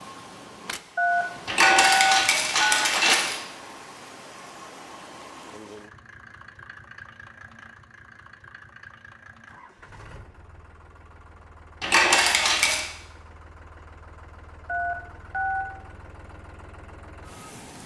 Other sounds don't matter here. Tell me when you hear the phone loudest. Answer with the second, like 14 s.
2 s.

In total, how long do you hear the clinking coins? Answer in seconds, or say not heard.
3 s.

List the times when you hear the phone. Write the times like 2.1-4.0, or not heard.
0.9-2.9, 14.7-15.7.